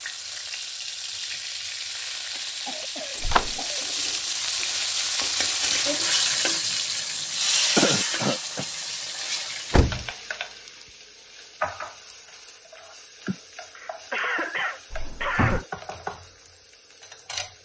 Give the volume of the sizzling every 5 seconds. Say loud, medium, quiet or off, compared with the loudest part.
medium, loud, quiet, quiet.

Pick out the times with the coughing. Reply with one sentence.
You can hear the coughing from 2.6 to 3.9 s, from 7.8 to 8.7 s and from 13.2 to 15.7 s.